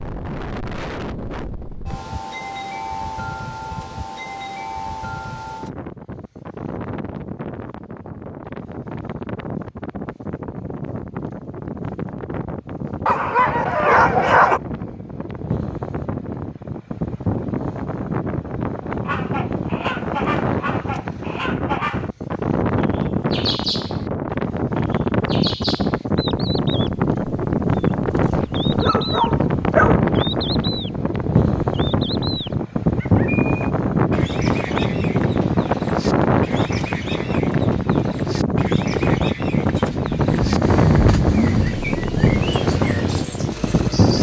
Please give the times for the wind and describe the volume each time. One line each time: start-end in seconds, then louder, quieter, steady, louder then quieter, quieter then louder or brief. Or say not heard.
0.0-44.1 louder.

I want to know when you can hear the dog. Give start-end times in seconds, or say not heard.
13.1-14.6, 28.1-30.0.